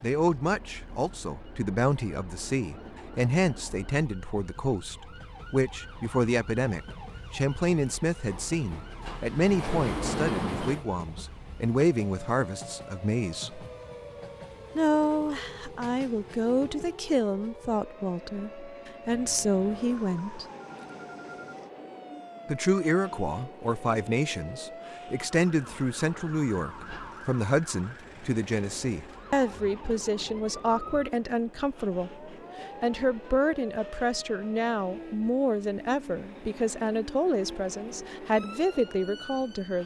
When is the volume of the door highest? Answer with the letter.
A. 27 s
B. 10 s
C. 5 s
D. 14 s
B.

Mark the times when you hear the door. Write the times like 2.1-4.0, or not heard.
8.3-10.8, 26.1-27.2.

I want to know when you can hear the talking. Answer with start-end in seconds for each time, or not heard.
0.0-13.7, 14.8-20.4, 22.4-39.8.